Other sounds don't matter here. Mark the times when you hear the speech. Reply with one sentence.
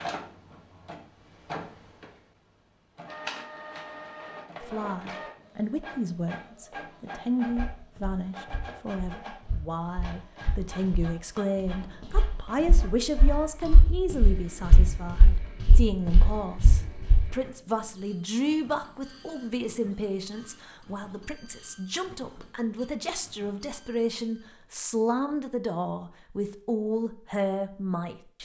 You can hear the speech from 4.6 to 28.4 s.